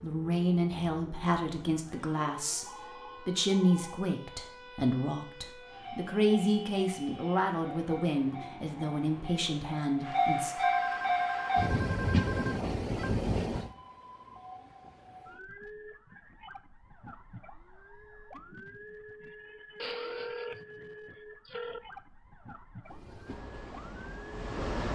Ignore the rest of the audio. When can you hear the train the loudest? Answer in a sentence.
The loudest moment of the train is at 11 seconds.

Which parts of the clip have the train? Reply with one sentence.
You can hear the train from 5.6 to 13.7 s and from 22.9 to 24.8 s.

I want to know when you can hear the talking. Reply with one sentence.
The talking can be heard from 0.0 to 10.6 s.